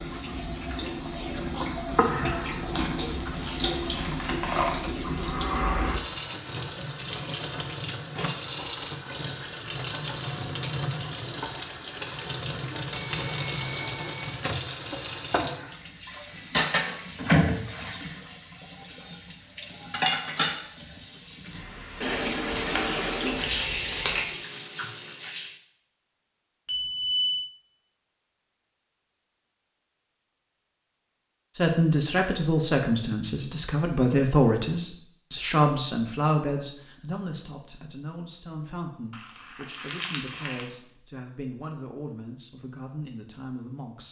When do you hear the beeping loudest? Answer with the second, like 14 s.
27 s.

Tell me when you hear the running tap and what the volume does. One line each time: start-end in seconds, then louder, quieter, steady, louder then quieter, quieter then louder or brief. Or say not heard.
0.0-25.6 steady.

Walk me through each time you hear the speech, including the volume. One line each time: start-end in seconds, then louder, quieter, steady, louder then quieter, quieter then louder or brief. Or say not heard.
31.6-44.0 quieter.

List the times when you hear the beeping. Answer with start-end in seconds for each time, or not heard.
12.9-14.3, 26.6-27.5.